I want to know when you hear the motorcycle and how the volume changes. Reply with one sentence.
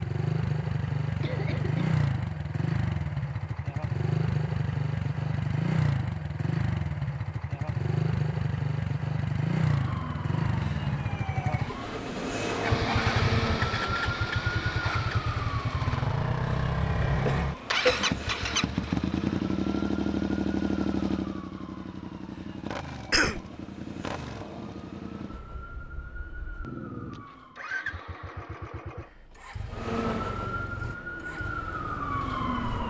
You can hear the motorcycle from 0.0 to 32.8 s, getting quieter.